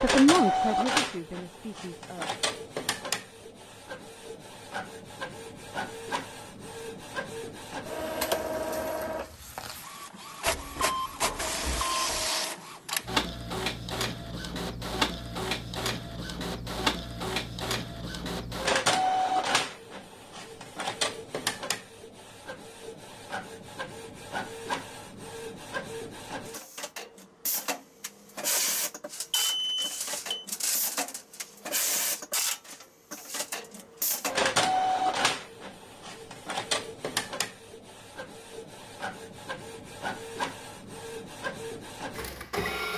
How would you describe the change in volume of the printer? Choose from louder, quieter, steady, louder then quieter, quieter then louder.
steady.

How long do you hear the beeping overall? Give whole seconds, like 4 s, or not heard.
3 s.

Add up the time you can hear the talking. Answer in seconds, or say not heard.
2 s.